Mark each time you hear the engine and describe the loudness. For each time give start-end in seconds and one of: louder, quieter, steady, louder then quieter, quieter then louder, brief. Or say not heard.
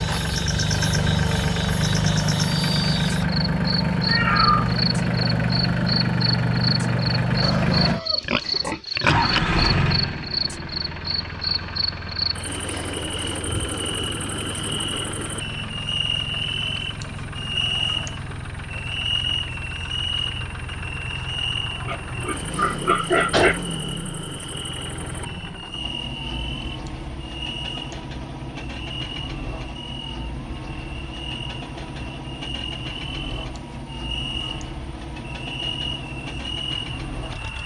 0.0-37.6 quieter.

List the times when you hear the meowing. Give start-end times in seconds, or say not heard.
4.0-4.8.